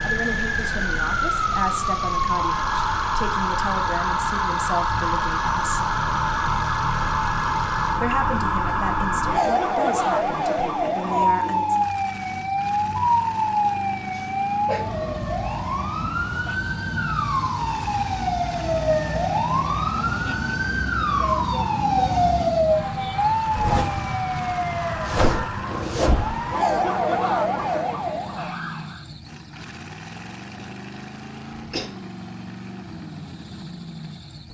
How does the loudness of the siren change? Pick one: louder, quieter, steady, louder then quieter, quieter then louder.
steady.